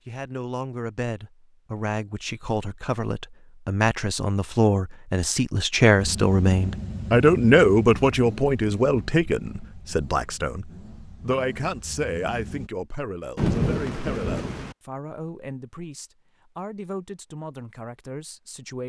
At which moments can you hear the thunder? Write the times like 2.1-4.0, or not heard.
13.3-14.8.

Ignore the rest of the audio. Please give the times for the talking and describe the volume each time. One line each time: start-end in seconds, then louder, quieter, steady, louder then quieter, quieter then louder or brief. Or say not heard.
0.1-18.8 louder then quieter.